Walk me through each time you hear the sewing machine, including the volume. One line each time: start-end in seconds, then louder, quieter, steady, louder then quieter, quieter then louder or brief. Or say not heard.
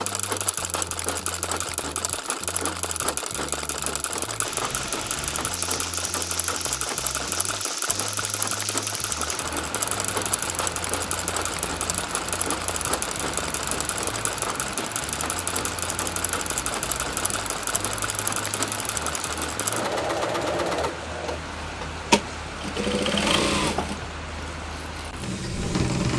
0.0-26.1 steady.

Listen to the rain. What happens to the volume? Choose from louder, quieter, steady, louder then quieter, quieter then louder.
steady.